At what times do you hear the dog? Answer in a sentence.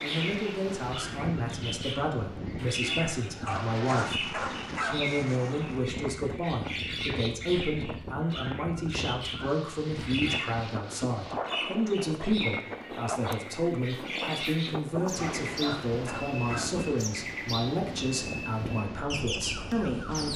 You can hear the dog from 3.4 to 5.2 s and from 15.1 to 16.9 s.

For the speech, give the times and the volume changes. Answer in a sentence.
You can hear the speech from 0.0 to 20.3 s, at a steady volume.